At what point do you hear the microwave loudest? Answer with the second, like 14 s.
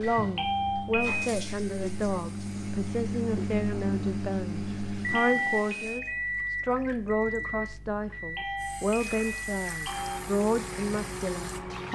5 s.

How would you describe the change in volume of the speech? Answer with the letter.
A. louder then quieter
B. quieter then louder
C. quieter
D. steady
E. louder
D.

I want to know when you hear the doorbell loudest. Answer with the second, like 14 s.
1 s.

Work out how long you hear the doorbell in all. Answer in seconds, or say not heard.
4 s.